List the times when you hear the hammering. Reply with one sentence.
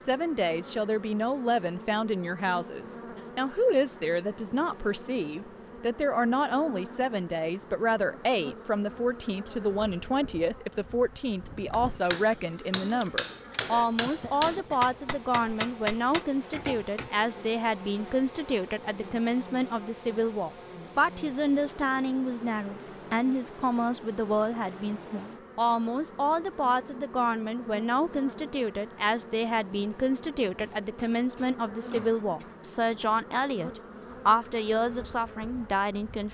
The hammering can be heard from 11.7 to 17.1 s.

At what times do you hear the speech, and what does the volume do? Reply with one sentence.
The speech can be heard from 0.0 to 36.3 s, at a steady volume.